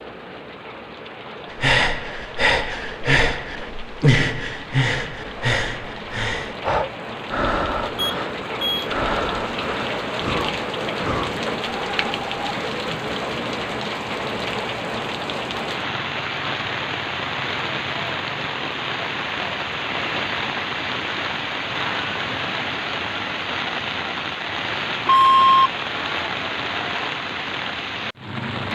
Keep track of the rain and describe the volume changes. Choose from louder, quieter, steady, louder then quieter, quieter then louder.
louder.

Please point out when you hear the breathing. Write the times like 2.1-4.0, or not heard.
1.5-12.6.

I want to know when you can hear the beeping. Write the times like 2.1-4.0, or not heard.
8.0-8.8, 25.1-25.7.